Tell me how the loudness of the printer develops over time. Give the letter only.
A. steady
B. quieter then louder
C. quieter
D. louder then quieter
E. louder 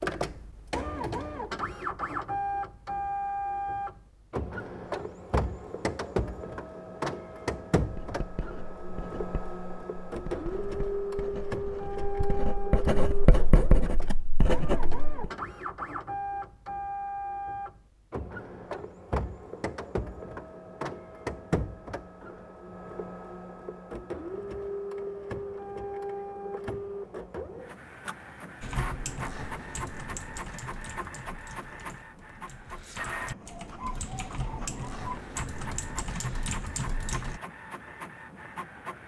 C.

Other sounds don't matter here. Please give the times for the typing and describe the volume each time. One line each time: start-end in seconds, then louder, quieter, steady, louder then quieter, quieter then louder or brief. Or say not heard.
28.6-37.4 quieter then louder.